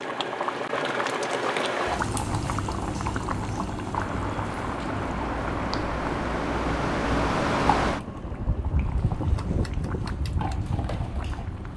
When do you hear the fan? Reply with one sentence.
The fan can be heard from 3.9 to 11.7 s.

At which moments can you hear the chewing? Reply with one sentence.
You can't hear the chewing here.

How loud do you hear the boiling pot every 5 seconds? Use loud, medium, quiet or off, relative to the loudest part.
loud, medium, medium.